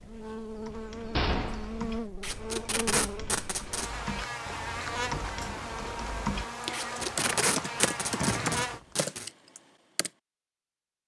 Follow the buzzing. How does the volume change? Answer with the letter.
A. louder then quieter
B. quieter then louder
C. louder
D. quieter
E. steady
E.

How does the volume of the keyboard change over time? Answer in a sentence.
The volume of the keyboard goes up.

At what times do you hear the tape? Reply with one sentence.
The tape can be heard from 2.2 to 3.9 s and from 6.7 to 9.3 s.